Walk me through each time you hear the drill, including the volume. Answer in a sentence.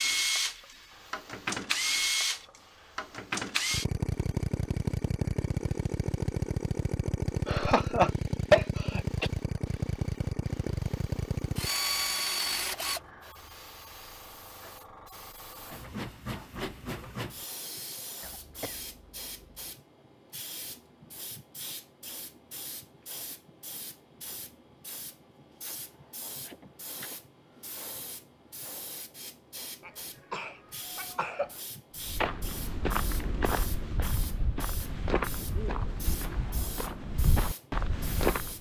You can hear the drill from 0.0 to 13.0 s, at a steady volume.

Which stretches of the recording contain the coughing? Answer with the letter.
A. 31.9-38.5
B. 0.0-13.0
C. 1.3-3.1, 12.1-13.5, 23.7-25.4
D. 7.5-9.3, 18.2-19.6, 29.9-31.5
D.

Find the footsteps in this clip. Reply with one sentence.
You can hear the footsteps from 31.9 to 38.5 s.